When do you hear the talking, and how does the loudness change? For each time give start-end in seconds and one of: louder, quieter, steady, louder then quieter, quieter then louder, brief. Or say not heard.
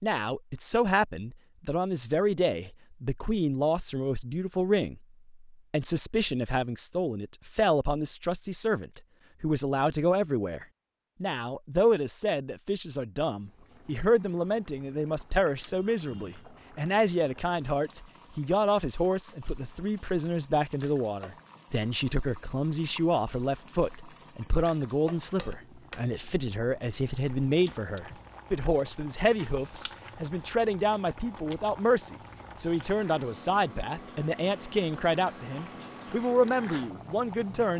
0.0-37.7 steady.